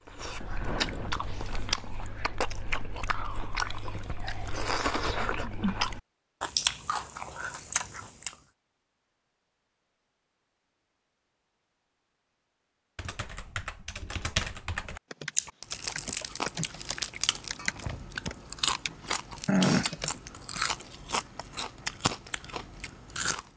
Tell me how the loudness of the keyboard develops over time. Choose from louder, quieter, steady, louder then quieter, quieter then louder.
louder.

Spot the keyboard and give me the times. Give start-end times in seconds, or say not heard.
12.9-20.9.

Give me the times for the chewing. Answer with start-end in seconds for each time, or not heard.
0.1-8.3, 15.3-23.4.